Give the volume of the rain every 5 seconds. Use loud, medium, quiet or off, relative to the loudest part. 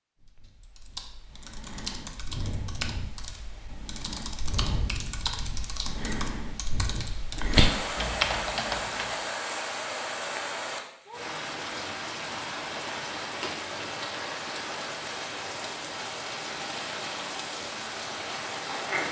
off, loud, loud, loud.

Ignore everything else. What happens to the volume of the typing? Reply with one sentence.
The volume of the typing goes up.